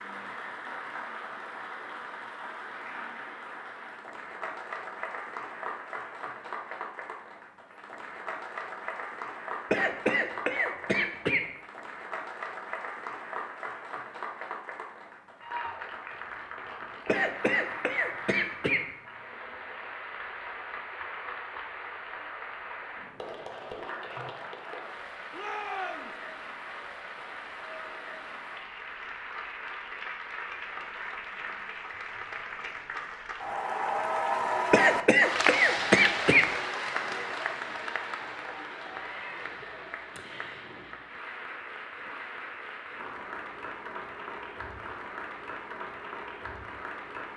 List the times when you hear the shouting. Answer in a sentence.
You can hear the shouting from 25.3 to 26.1 s.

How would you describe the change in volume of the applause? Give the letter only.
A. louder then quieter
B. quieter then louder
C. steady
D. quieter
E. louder
A.